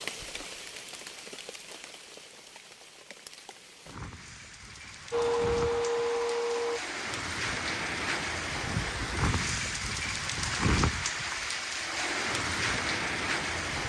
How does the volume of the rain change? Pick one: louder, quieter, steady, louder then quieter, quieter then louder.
louder.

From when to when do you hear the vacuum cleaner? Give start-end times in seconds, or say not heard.
5.1-6.8.